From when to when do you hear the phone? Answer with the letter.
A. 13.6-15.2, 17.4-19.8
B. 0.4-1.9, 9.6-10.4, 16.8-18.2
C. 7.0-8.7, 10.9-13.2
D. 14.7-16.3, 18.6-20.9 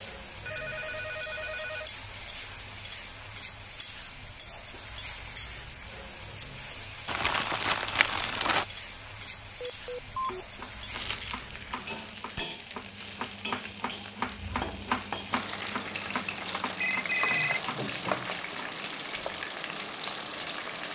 B.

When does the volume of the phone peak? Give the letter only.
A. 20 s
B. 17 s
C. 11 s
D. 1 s
B.